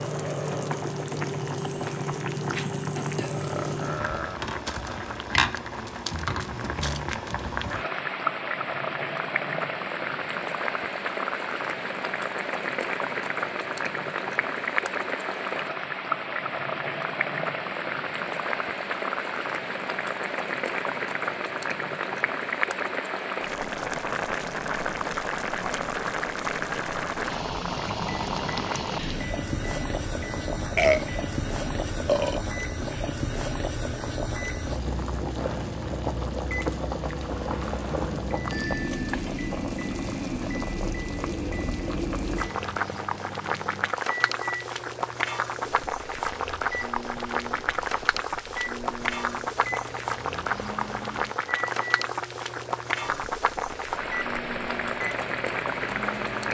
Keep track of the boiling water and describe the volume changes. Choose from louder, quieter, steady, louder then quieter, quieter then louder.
steady.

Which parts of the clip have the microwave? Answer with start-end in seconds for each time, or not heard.
27.9-56.4.